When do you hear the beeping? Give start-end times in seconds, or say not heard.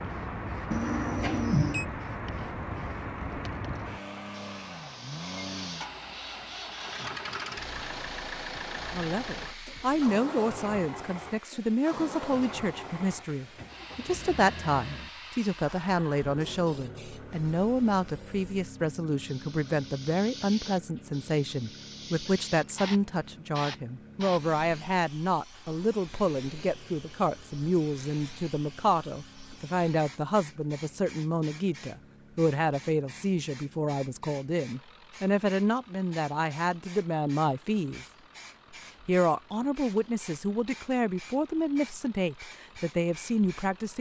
0.7-1.9.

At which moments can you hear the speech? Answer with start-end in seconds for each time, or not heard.
8.9-38.0, 39.0-43.9.